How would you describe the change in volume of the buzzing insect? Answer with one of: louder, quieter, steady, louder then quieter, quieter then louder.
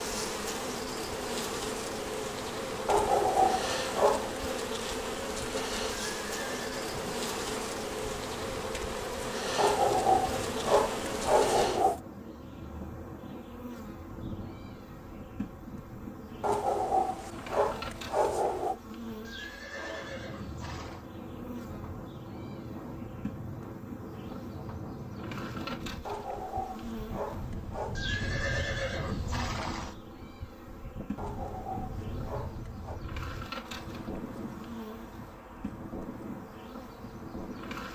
quieter.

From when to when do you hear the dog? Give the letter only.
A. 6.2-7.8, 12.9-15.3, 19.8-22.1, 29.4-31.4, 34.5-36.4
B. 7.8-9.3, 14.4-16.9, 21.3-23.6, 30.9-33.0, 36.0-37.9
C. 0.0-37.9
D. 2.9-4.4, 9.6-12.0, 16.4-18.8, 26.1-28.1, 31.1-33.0
D.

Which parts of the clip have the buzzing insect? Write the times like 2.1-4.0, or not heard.
0.0-37.9.